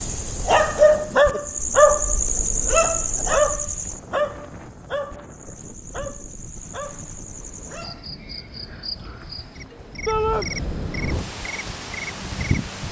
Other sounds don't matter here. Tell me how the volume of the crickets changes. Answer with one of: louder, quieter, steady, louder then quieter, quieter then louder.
quieter then louder.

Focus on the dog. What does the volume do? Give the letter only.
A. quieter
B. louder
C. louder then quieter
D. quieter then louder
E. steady
A.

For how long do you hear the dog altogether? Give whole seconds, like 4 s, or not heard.
8 s.